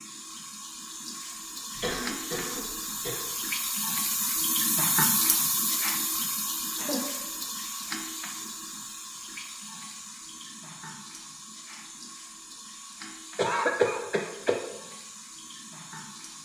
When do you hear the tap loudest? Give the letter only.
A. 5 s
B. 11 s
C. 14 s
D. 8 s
A.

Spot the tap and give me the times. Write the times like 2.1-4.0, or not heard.
0.0-16.4.